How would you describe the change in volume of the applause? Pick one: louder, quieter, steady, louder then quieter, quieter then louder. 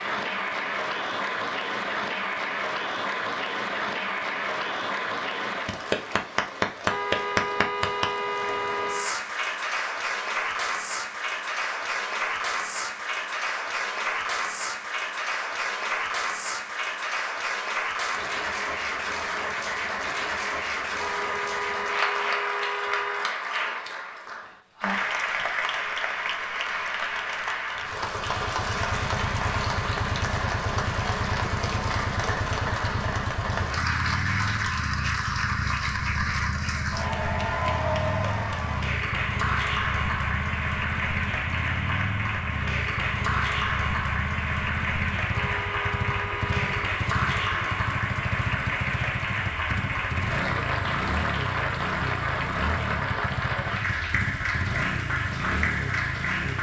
steady.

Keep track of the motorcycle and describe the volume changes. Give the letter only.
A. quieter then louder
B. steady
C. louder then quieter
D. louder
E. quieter
B.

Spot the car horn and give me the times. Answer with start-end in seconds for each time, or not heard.
6.8-9.2, 21.0-23.3, 45.3-46.9.